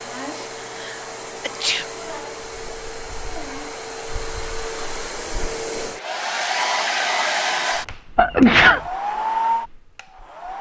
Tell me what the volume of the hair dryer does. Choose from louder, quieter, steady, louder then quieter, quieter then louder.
louder.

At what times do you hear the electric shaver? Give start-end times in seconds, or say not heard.
not heard.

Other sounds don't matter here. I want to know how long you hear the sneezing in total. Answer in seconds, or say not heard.
2 s.